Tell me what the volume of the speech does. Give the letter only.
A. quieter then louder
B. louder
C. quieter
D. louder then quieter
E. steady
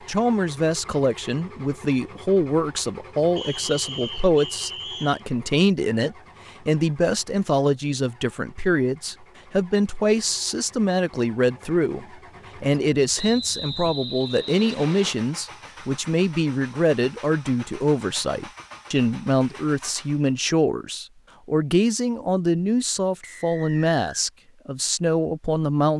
E.